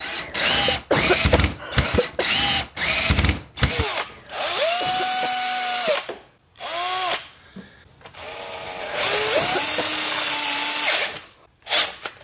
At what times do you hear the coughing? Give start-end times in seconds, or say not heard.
0.2-2.2, 4.1-6.2, 8.7-9.9.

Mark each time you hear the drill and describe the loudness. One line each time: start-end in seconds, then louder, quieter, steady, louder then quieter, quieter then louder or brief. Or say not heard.
0.0-12.1 steady.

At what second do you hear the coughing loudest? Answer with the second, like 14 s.
1 s.